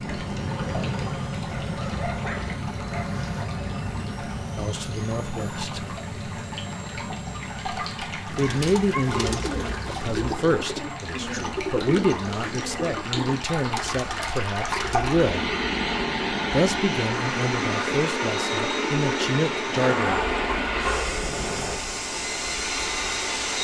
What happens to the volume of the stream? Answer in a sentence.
The volume of the stream goes up.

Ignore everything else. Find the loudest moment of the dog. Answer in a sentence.
The loudest moment of the dog is at 20 seconds.